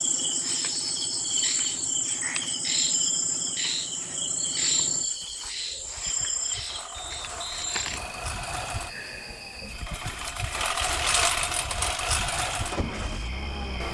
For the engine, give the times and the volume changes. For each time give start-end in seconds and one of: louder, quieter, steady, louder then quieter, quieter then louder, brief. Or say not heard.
0.0-13.8 louder.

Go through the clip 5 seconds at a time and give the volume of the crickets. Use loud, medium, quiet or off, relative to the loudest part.
loud, medium, quiet.